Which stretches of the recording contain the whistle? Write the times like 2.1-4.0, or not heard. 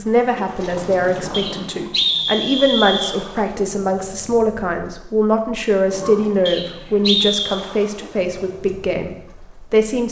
1.3-3.1, 6.5-7.7.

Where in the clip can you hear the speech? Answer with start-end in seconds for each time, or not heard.
0.0-10.0.